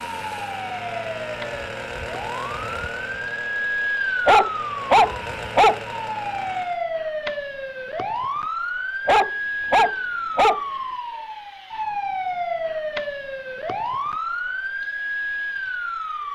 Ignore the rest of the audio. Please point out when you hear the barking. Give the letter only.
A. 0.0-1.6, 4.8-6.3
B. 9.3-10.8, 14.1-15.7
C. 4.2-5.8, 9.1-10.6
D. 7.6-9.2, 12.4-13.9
C.